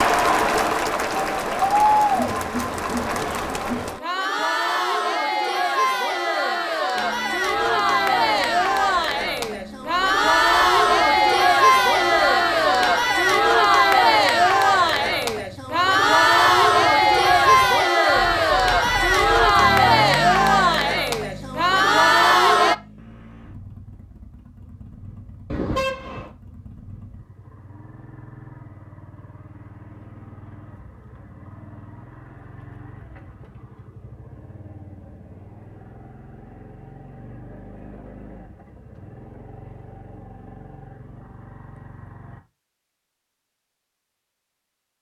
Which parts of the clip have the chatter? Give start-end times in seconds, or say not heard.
0.0-22.8.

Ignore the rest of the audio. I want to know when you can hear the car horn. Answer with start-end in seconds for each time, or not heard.
25.4-26.3.